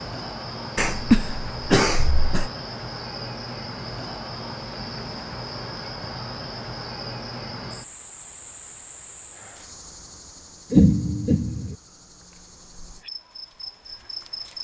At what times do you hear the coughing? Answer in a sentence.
You can hear the coughing from 0.8 to 2.5 s and from 10.7 to 11.8 s.